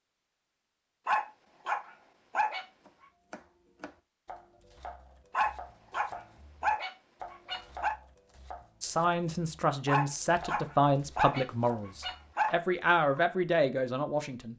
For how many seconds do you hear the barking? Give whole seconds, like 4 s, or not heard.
7 s.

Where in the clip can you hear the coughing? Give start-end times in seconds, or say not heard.
not heard.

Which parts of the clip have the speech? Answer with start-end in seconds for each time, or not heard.
8.8-14.5.